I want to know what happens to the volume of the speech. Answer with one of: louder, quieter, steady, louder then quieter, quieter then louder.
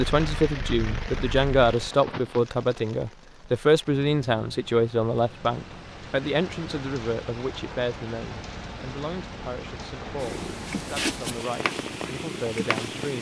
quieter.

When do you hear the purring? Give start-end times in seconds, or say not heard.
0.0-1.9, 10.2-13.1.